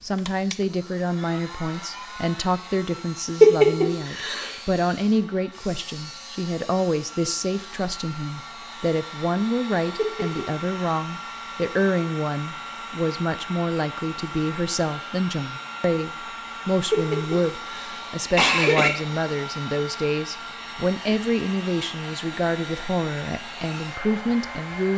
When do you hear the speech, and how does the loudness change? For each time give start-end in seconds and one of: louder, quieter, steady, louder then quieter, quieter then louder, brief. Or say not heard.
0.0-24.9 steady.